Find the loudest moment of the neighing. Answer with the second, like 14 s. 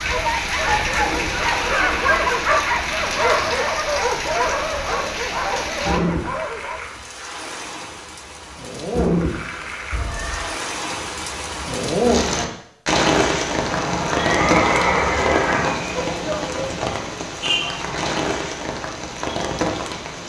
15 s.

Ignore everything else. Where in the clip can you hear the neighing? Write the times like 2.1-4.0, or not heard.
0.6-2.4, 9.9-10.6, 13.7-15.7.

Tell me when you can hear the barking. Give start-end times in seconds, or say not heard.
0.0-6.9.